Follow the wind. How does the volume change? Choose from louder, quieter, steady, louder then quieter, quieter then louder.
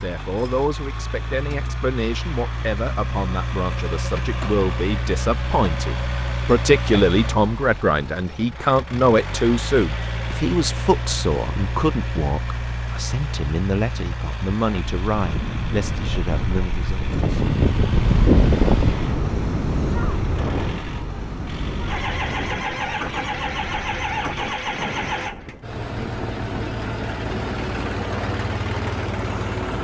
quieter.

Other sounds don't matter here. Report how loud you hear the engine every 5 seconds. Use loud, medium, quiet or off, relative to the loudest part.
loud, loud, loud, medium, loud, loud.